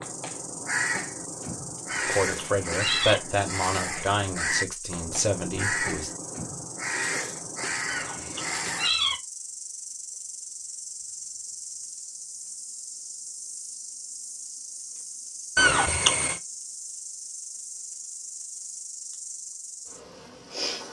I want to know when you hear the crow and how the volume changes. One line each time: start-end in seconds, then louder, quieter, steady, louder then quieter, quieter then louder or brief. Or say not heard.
0.0-8.9 steady.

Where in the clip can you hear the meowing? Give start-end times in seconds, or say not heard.
1.9-3.2, 7.8-9.2, 15.6-16.4.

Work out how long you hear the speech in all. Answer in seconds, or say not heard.
4 s.